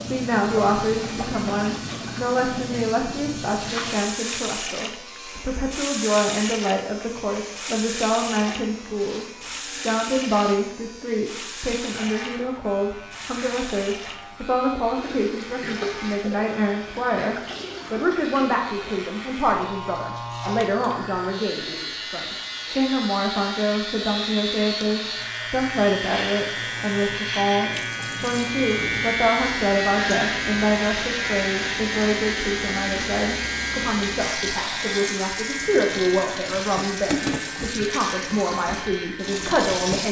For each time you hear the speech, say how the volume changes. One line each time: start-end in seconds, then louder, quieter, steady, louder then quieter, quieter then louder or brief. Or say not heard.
0.0-40.0 steady.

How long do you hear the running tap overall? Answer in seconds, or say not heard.
40 s.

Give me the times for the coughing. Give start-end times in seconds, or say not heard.
not heard.